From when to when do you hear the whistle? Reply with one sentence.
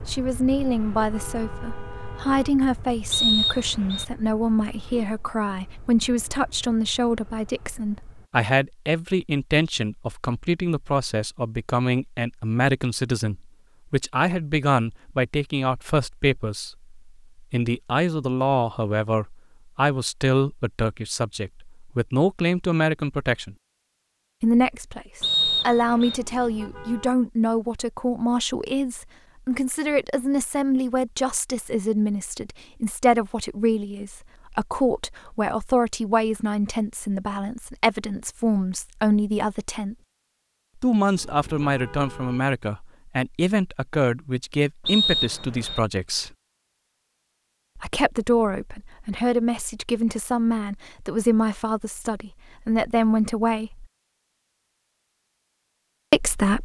The whistle can be heard from 3.1 to 4.0 s, from 25.2 to 26.2 s and from 44.9 to 45.8 s.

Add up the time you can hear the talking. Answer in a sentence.
You can hear the talking for 51 seconds altogether.